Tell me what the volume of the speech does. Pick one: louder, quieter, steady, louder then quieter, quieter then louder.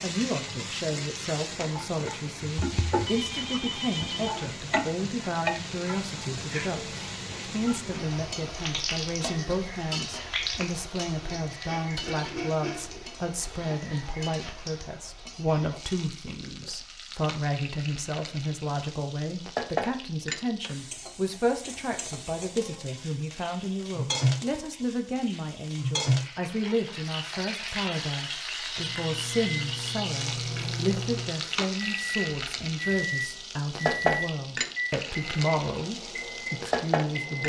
steady.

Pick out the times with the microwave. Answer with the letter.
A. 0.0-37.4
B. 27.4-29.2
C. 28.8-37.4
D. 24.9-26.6
C.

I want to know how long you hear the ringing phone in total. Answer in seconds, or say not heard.
2 s.